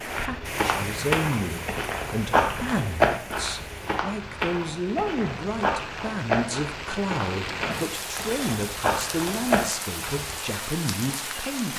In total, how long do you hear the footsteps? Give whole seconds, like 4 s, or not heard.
10 s.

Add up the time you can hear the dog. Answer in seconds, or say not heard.
not heard.